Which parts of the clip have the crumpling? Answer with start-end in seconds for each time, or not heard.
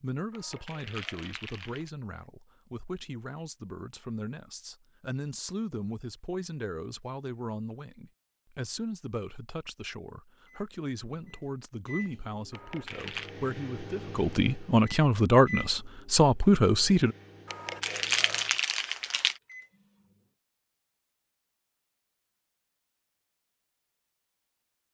0.3-1.9, 12.5-13.3, 17.4-19.4.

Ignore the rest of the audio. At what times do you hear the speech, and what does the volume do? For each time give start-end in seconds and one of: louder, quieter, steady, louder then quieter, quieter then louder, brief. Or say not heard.
0.0-17.1 louder.